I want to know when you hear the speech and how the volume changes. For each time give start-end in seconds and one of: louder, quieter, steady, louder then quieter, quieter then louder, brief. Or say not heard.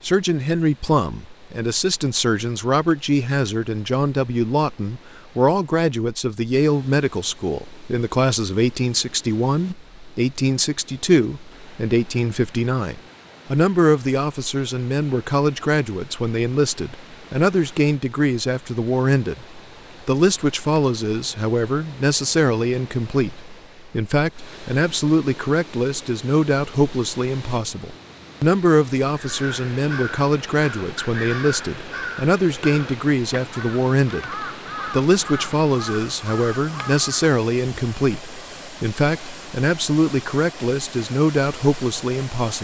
0.0-42.5 steady.